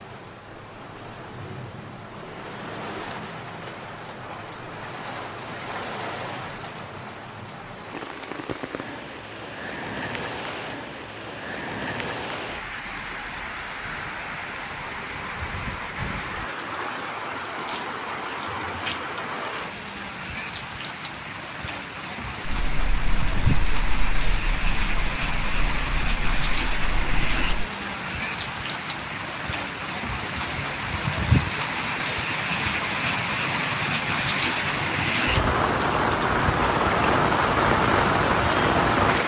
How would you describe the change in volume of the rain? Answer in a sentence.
The volume of the rain goes up.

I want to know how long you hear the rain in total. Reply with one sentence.
The rain can be heard for 39 seconds in total.